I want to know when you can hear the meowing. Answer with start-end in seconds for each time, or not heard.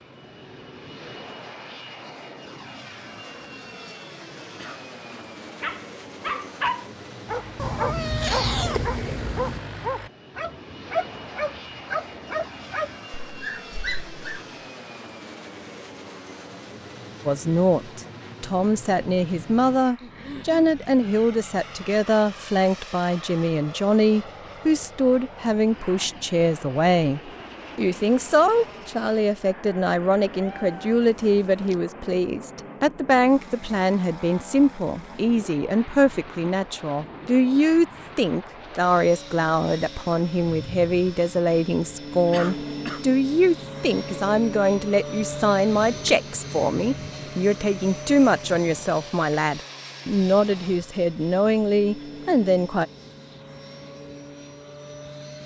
7.5-9.6, 30.3-31.8.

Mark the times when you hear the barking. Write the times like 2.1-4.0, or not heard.
5.5-14.4.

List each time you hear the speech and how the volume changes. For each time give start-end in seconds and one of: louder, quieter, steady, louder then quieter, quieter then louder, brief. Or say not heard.
17.2-52.9 steady.